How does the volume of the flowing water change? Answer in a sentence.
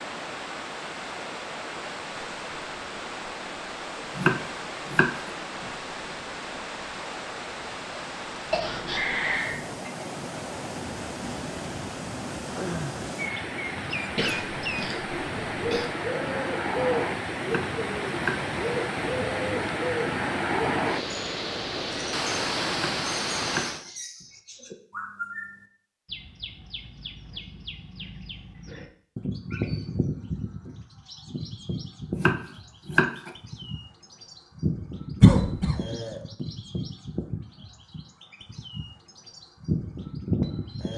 The loudness of the flowing water goes up.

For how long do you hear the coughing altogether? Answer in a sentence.
The coughing can be heard for 4 seconds in total.